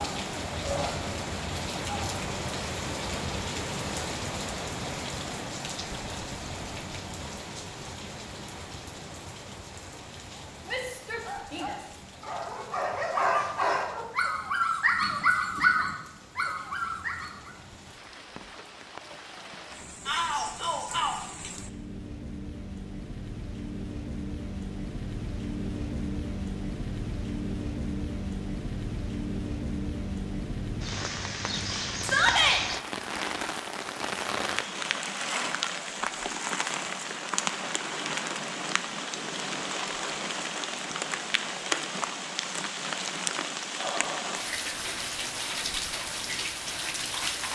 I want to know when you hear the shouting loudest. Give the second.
32 s.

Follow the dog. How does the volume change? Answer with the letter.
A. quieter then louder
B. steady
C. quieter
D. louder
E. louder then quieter
E.